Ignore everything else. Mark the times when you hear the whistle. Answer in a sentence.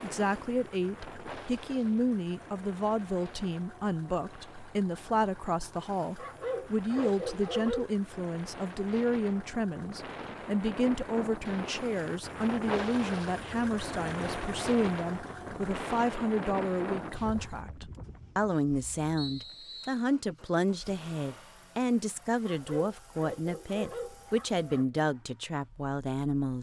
The whistle can be heard from 19.1 to 20.0 s.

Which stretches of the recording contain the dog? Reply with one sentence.
The dog can be heard from 6.2 to 7.9 s and from 22.4 to 24.9 s.